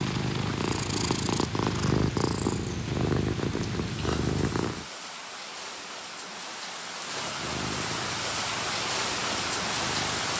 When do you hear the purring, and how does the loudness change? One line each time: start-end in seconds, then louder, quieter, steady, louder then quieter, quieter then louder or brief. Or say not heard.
0.0-4.8 steady
7.3-10.3 brief.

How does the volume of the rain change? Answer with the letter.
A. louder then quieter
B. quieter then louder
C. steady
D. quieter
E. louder
E.